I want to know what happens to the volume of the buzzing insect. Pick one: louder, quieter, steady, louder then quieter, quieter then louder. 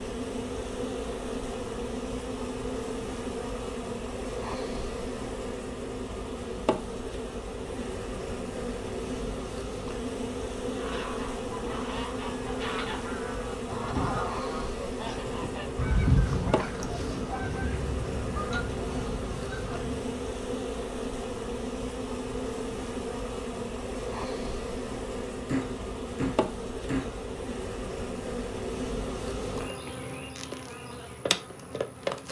steady.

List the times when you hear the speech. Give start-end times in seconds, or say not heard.
not heard.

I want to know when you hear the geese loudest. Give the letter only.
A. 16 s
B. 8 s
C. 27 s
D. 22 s
A.